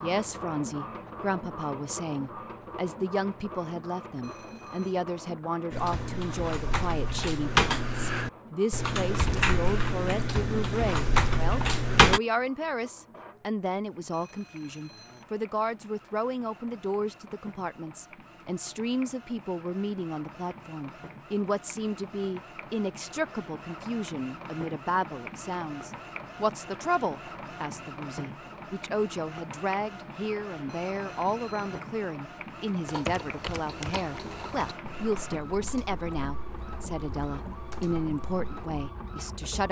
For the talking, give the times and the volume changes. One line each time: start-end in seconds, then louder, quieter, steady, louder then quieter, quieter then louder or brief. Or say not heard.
0.0-39.6 steady.